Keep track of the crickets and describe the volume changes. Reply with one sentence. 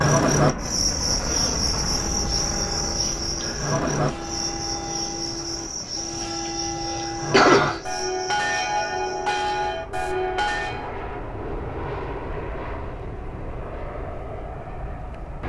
The volume of the crickets goes down.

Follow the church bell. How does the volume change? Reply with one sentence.
The loudness of the church bell goes up.